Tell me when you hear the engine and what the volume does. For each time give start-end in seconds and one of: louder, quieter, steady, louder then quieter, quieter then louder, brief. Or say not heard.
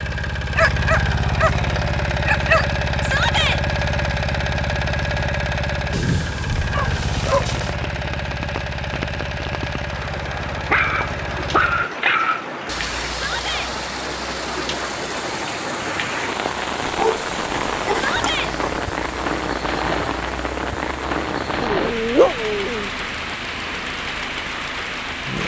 0.0-25.4 quieter.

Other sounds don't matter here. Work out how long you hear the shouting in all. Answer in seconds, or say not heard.
2 s.